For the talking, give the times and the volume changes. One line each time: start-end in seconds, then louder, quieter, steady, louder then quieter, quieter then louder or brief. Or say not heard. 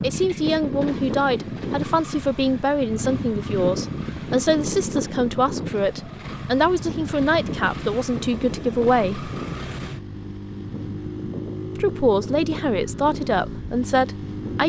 0.0-9.3 steady
11.8-14.6 brief.